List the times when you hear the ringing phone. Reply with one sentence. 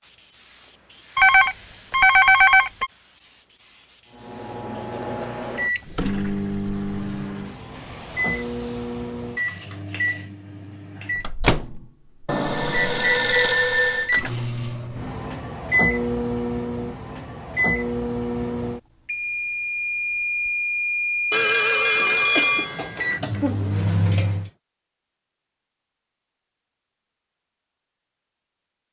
The ringing phone can be heard from 1.1 to 2.9 s, from 12.2 to 14.1 s and from 21.3 to 23.2 s.